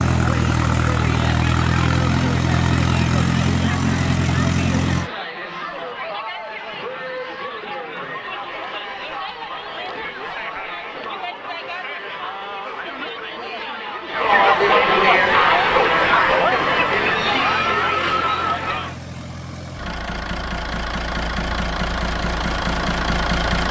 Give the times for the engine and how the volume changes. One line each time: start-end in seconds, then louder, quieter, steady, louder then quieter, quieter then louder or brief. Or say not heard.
0.0-5.1 steady
15.2-23.6 louder.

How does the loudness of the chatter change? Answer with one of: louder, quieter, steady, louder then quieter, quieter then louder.
louder.